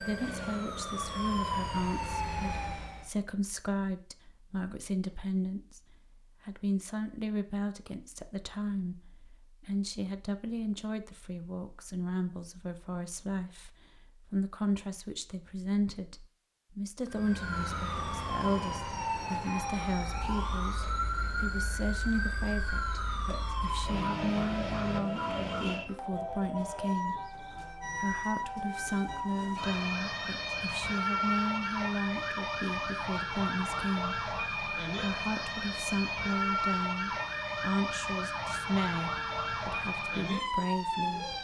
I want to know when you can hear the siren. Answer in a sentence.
You can hear the siren from 0.0 to 3.1 s and from 17.1 to 41.4 s.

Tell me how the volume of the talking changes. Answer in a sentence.
The volume of the talking stays about the same.